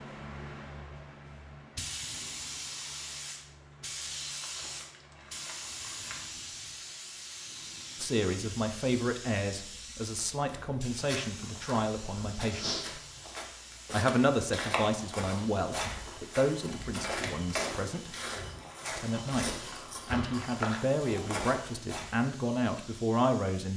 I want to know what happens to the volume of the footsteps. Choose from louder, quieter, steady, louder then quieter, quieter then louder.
steady.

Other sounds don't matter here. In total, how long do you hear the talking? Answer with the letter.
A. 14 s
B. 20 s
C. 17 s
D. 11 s
A.